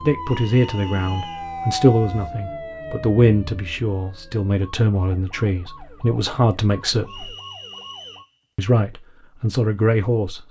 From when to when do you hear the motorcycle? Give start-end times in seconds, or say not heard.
not heard.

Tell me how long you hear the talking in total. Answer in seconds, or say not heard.
9 s.